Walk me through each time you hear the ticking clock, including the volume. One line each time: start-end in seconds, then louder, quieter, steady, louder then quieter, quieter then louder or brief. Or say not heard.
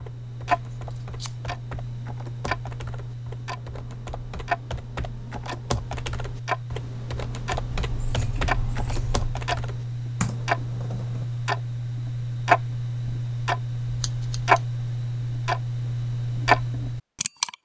0.0-17.6 louder.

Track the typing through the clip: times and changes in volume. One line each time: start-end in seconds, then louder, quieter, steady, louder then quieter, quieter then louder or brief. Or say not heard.
0.0-11.2 louder.